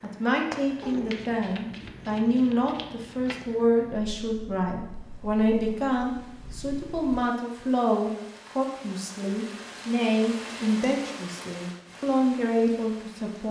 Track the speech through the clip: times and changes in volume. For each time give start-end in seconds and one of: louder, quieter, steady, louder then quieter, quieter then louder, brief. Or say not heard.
0.0-13.4 steady.